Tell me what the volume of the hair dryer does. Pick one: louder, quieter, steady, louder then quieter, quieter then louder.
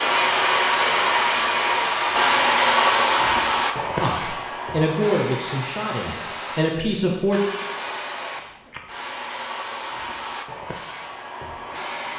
quieter.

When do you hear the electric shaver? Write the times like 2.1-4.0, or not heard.
not heard.